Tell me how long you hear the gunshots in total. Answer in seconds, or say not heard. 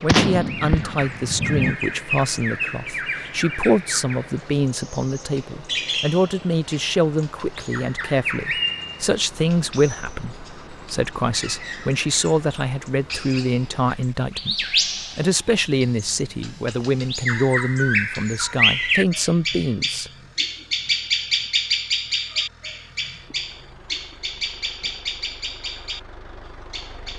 2 s.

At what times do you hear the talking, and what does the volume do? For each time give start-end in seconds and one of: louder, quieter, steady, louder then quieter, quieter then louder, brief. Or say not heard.
0.0-20.1 steady.